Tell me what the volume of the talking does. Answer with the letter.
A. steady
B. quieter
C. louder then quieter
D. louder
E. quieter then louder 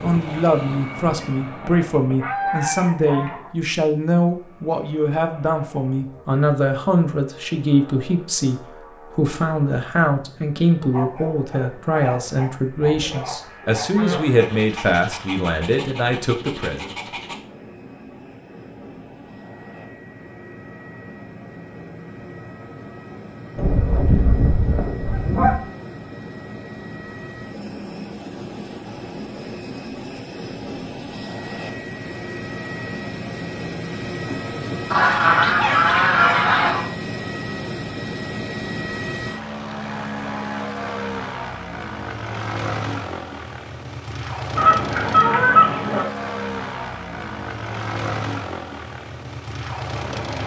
A.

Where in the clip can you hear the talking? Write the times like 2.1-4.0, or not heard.
0.0-16.9.